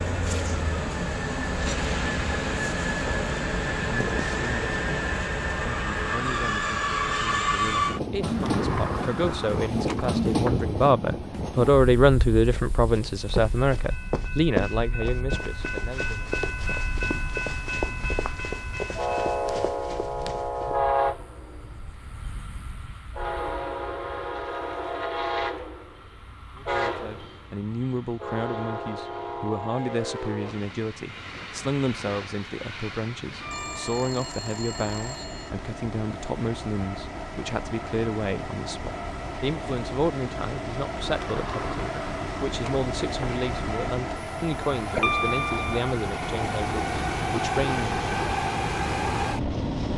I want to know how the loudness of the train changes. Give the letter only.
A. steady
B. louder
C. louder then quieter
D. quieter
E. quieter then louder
E.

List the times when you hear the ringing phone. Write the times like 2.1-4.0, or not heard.
33.5-35.5.